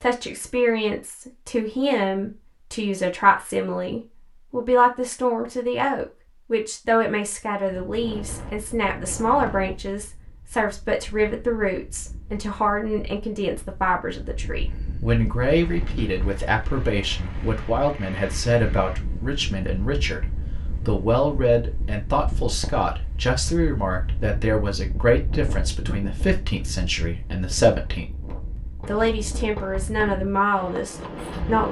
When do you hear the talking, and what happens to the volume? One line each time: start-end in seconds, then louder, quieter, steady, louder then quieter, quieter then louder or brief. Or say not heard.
0.0-28.1 steady
28.9-31.6 brief.